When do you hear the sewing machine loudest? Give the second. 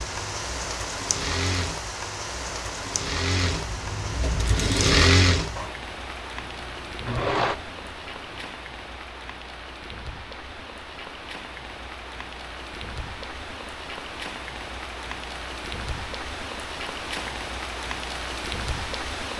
5 s.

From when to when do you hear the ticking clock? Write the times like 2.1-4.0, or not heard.
not heard.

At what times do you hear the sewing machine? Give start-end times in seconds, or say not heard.
0.0-8.5.